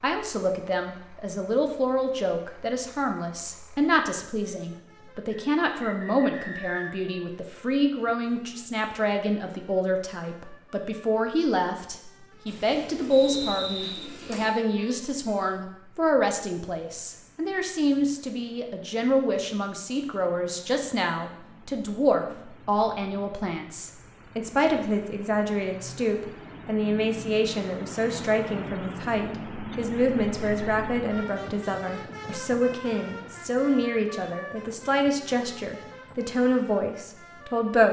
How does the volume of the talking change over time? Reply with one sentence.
The loudness of the talking stays about the same.